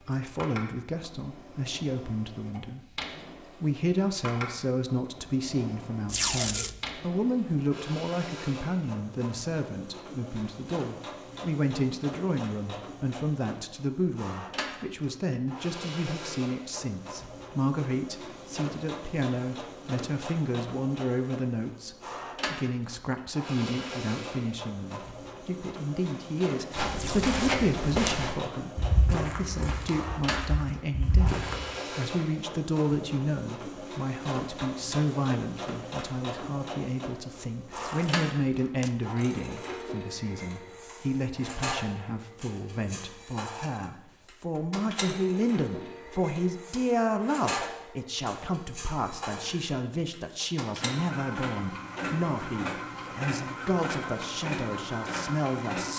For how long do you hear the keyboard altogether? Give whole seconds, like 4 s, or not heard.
not heard.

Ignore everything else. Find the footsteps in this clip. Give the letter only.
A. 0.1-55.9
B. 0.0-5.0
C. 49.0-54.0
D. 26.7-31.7
D.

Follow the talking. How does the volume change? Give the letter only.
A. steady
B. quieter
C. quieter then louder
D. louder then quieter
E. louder
A.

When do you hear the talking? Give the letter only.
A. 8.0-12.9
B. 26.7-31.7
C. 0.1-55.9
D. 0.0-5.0
C.